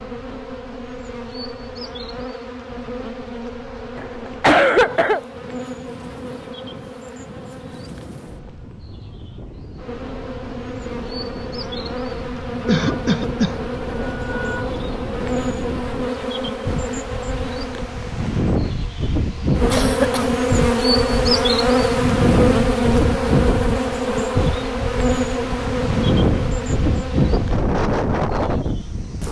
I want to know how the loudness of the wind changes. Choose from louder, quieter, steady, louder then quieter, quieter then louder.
louder.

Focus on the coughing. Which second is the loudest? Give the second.
5 s.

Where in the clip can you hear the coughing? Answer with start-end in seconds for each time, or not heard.
4.0-5.2, 12.7-14.8, 19.7-20.4.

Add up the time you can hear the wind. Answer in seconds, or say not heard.
29 s.